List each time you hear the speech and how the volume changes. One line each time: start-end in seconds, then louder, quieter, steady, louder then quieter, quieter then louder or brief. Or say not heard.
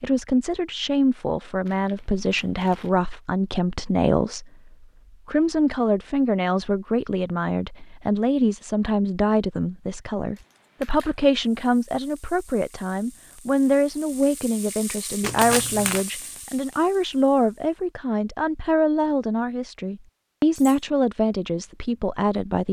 0.0-22.6 steady.